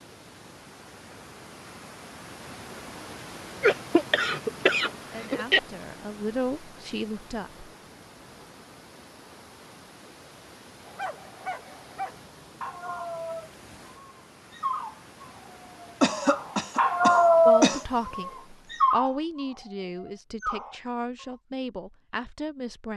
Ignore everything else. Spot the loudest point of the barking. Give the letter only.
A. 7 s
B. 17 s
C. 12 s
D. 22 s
B.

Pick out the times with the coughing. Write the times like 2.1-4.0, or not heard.
3.6-5.6, 16.0-17.9.